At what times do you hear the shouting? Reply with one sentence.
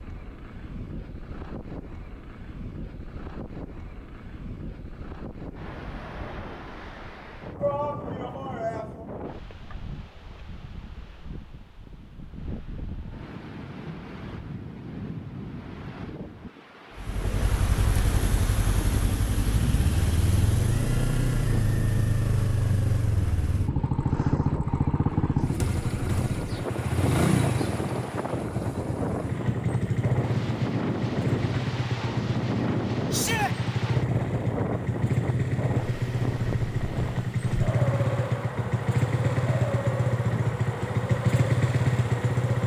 The shouting can be heard from 7.5 to 9.1 s and from 33.1 to 33.5 s.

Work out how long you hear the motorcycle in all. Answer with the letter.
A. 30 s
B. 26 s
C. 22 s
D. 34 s
B.